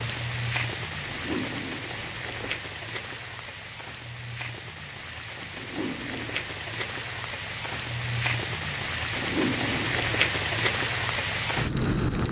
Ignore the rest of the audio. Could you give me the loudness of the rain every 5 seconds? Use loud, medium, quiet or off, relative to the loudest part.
medium, medium, loud.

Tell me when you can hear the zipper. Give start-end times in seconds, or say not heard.
1.1-2.5, 5.5-6.5, 9.1-10.2.